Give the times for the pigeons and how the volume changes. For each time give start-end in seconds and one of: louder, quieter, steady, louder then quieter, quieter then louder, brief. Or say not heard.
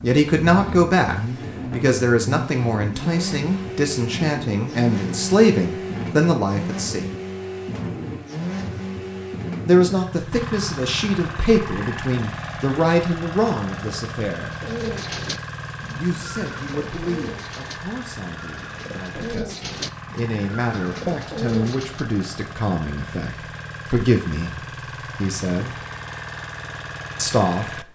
14.4-22.1 quieter then louder.